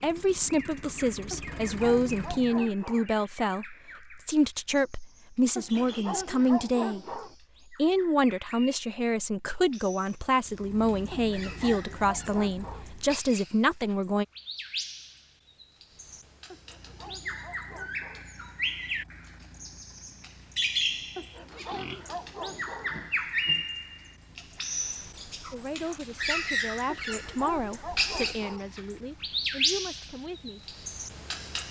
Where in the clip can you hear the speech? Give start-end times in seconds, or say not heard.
0.0-14.2, 25.5-30.8.